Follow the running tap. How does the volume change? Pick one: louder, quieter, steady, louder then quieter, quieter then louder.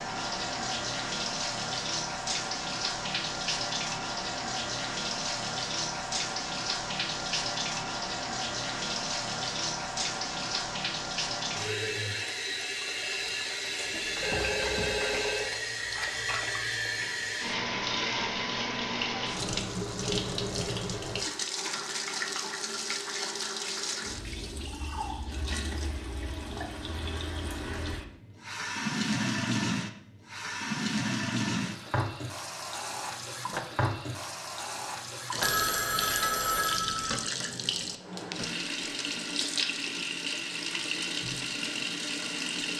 steady.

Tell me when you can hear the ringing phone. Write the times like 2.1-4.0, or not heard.
13.9-15.5, 35.4-37.1.